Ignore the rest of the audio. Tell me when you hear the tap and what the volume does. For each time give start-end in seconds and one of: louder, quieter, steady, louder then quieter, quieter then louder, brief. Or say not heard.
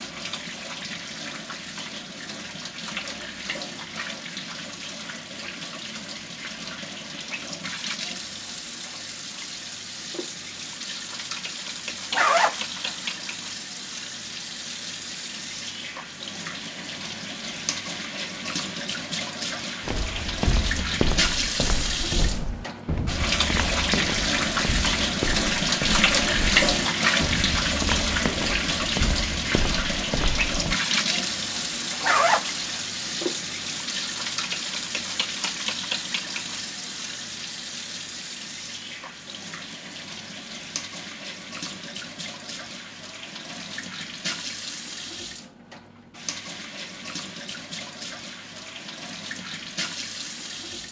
0.0-50.8 louder then quieter.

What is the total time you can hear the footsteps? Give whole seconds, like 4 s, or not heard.
11 s.